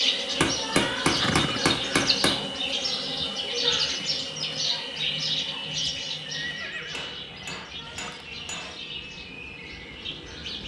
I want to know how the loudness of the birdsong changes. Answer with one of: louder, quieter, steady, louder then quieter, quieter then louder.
quieter.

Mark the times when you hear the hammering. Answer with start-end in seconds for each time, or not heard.
0.4-2.4, 6.9-8.8.